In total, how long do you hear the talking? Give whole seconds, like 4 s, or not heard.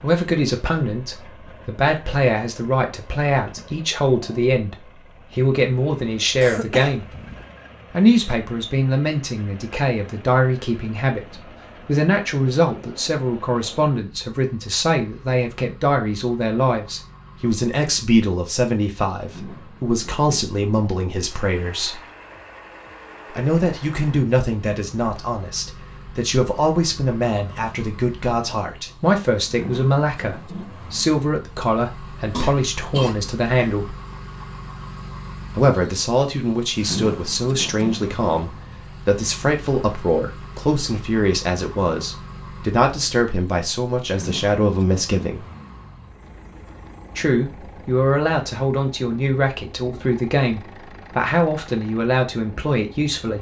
48 s.